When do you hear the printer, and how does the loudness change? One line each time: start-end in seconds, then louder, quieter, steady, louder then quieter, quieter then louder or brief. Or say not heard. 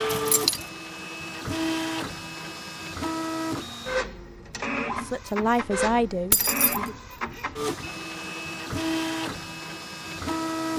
0.0-10.7 steady.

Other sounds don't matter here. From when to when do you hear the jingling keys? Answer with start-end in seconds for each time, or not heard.
0.1-0.7, 6.3-6.8.